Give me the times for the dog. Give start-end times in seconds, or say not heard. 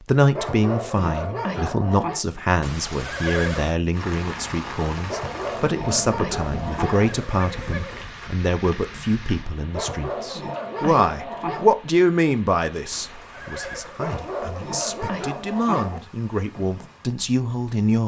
0.3-2.2, 5.0-7.1, 9.7-11.8, 13.9-16.0.